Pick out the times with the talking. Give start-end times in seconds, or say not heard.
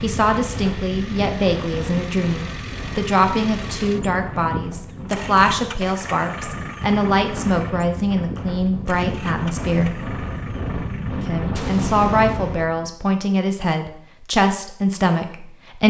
0.0-10.0, 11.2-15.8.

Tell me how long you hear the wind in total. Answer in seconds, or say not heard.
13 s.